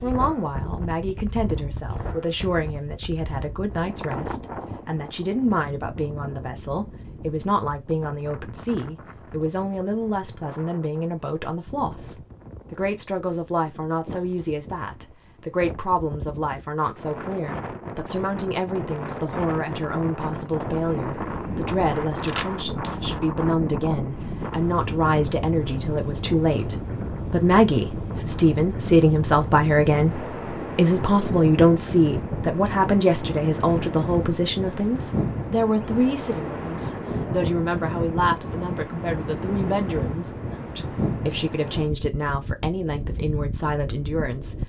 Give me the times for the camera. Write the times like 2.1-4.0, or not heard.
22.2-23.2.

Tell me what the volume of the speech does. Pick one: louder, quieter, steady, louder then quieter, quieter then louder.
louder then quieter.